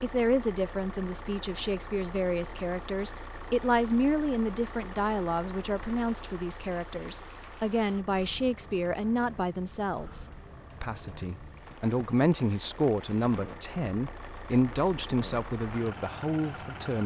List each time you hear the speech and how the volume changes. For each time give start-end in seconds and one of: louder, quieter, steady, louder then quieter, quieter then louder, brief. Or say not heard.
0.0-17.0 steady.